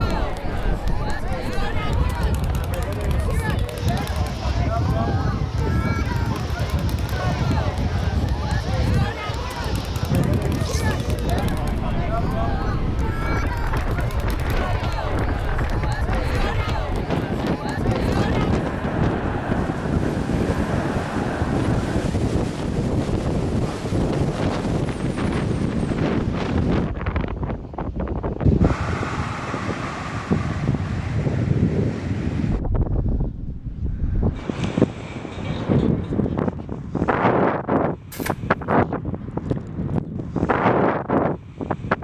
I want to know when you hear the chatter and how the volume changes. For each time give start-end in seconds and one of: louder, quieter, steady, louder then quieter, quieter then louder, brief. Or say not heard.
0.0-22.1 steady.